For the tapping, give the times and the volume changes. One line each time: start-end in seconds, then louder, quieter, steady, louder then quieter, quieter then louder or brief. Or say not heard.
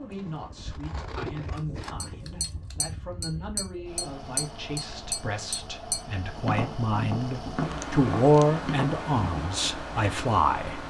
2.0-9.4 steady.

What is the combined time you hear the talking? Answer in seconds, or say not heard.
11 s.